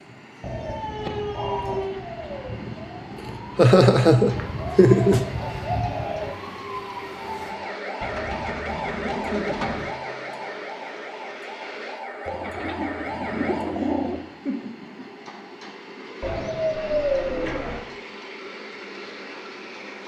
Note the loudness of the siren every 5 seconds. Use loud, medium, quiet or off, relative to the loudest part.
loud, loud, loud, off.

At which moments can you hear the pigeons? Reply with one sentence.
You can hear the pigeons from 0.4 to 1.9 s, from 4.3 to 6.3 s, from 8.0 to 9.9 s, from 12.2 to 14.2 s and from 16.2 to 17.9 s.